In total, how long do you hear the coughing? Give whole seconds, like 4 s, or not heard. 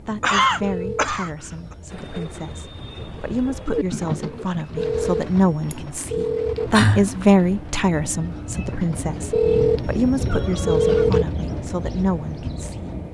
3 s.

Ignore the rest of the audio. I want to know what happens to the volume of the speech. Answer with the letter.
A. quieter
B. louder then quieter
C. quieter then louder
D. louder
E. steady
B.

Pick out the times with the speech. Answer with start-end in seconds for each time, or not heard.
0.0-12.9.